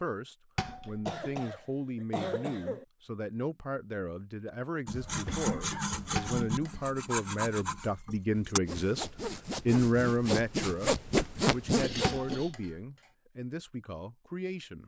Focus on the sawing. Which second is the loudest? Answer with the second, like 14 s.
11 s.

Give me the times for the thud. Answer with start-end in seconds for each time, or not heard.
0.6-1.1, 6.2-7.0, 12.0-12.8.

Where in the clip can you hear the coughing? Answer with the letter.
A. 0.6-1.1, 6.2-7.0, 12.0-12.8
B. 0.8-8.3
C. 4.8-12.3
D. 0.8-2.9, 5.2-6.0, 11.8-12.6
D.